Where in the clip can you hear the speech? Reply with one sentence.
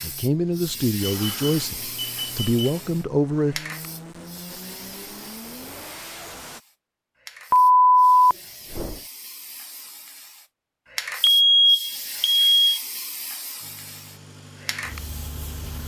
You can hear the speech from 0.0 to 3.6 s.